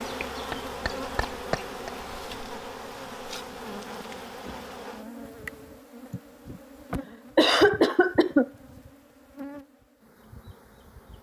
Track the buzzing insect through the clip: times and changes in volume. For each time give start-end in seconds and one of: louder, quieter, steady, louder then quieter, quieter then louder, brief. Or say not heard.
0.0-11.1 quieter.